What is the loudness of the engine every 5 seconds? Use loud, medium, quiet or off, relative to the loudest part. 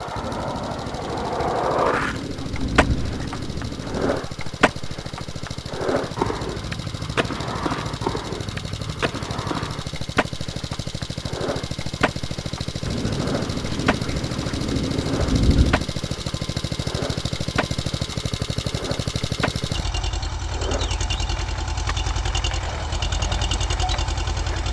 medium, medium, loud, loud, loud.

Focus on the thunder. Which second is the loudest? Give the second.
15 s.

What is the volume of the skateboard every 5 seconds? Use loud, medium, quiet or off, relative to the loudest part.
loud, loud, medium, medium, medium.